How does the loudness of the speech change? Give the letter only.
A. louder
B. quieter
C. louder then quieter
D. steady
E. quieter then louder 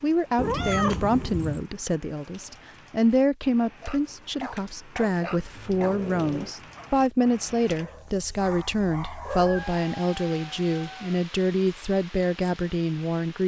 D.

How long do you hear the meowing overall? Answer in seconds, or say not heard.
4 s.